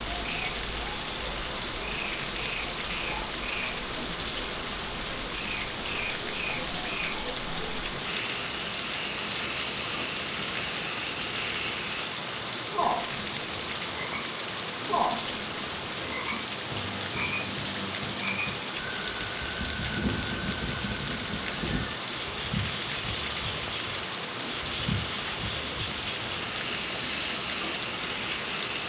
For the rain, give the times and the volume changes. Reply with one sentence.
You can hear the rain from 0.0 to 28.8 s, at a steady volume.